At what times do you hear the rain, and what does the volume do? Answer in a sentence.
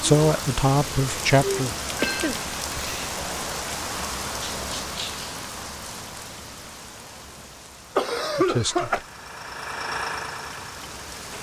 The rain can be heard from 0.0 to 11.3 s, getting quieter.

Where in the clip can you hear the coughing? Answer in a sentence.
You can hear the coughing from 1.9 to 3.1 s and from 8.0 to 9.0 s.